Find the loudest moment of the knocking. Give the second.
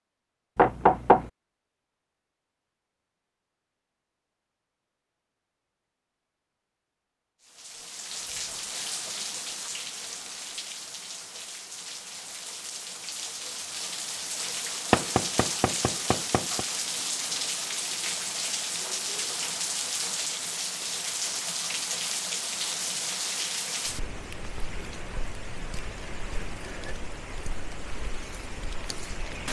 1 s.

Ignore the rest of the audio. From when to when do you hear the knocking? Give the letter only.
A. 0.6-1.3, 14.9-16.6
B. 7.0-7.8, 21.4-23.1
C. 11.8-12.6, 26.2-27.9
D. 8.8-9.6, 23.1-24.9
A.